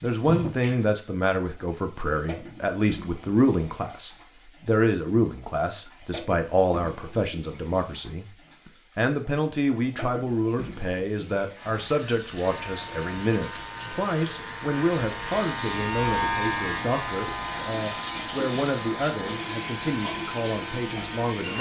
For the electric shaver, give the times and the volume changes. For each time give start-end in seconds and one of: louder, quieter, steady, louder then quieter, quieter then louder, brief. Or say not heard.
12.4-21.5 louder then quieter.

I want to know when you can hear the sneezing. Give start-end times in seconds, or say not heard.
0.2-0.8.